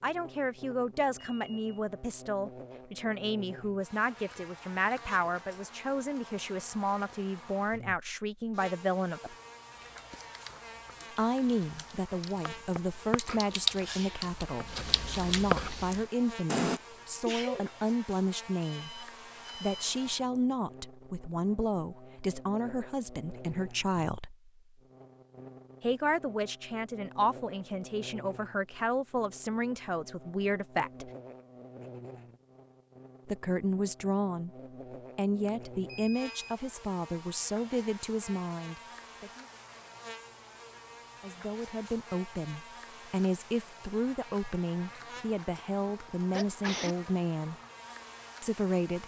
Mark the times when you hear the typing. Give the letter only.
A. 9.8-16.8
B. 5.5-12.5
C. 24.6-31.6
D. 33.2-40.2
A.